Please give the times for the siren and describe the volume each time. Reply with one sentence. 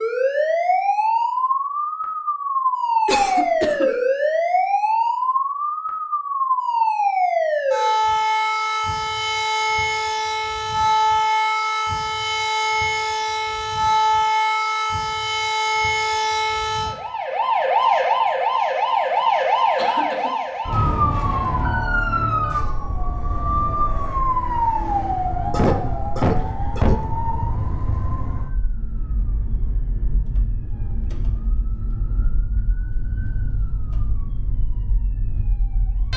You can hear the siren from 0.0 to 36.1 s, getting quieter.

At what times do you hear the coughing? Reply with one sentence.
You can hear the coughing from 3.0 to 3.9 s, from 18.9 to 20.3 s and from 25.5 to 27.0 s.